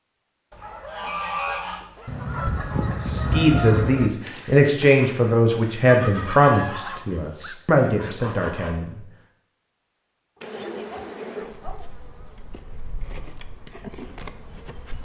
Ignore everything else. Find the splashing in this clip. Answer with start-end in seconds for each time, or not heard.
not heard.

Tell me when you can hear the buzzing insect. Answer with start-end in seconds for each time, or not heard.
10.4-14.9.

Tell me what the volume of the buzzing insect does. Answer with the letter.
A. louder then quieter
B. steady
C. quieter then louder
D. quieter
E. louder
C.